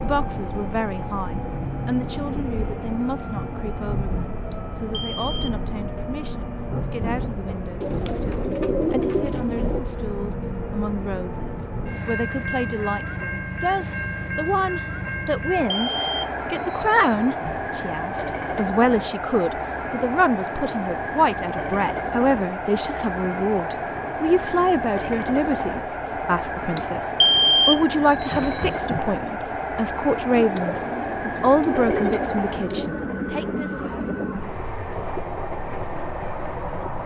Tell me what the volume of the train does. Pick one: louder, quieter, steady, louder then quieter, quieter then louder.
steady.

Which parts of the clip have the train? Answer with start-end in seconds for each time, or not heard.
0.0-37.0.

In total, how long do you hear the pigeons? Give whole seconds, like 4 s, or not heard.
5 s.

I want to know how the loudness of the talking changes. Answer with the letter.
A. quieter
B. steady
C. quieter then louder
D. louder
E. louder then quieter
D.